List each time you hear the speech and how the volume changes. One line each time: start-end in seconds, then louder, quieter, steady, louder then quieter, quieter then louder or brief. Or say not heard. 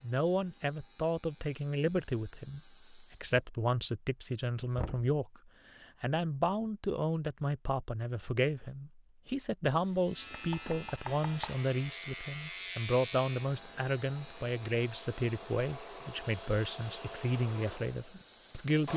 0.0-18.9 steady.